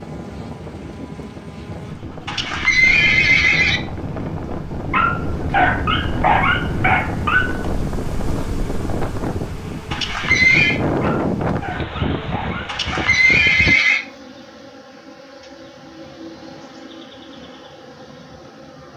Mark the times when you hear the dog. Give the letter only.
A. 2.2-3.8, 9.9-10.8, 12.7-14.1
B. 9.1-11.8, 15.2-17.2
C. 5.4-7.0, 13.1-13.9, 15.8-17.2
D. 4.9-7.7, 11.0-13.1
D.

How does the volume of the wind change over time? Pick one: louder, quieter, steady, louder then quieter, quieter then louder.
louder.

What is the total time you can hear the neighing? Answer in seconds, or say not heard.
4 s.